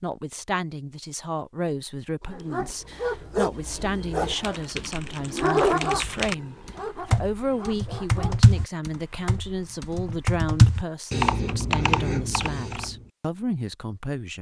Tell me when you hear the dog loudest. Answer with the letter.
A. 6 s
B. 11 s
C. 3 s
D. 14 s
A.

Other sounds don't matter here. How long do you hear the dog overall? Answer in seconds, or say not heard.
6 s.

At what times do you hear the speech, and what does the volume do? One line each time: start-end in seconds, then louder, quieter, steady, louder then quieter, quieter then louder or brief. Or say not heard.
0.0-14.3 steady.